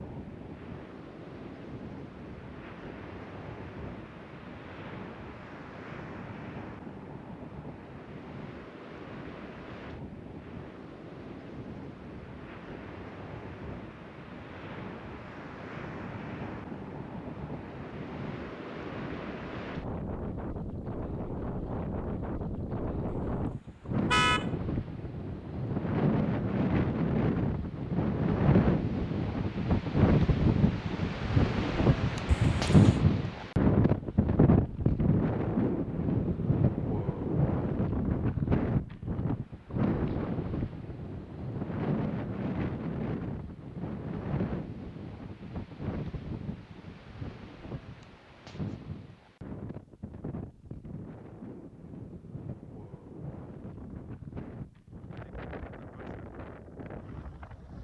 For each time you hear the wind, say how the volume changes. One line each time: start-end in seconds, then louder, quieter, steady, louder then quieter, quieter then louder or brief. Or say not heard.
0.0-57.8 louder then quieter.